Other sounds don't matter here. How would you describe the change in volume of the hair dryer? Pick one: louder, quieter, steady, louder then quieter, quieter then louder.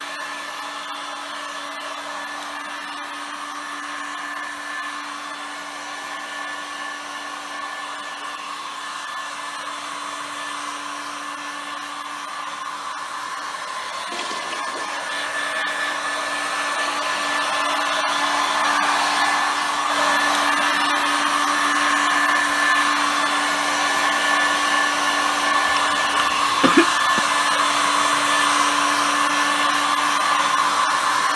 louder.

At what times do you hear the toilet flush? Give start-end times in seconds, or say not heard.
14.1-15.1.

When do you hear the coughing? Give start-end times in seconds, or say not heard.
25.6-27.2.